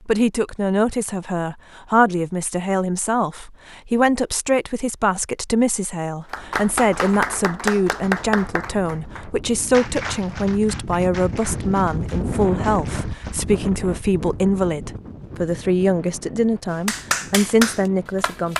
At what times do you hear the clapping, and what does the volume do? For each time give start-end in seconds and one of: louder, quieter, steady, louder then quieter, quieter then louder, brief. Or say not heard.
6.3-13.4 quieter
16.9-18.5 brief.